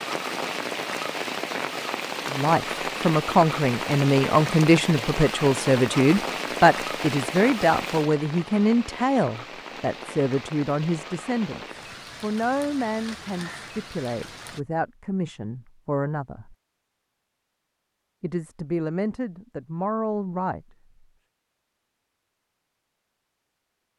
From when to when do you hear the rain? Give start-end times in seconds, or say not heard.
0.0-14.6.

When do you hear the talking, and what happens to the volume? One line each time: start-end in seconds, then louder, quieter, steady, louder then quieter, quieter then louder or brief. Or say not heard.
2.2-16.6 quieter
18.2-20.6 brief.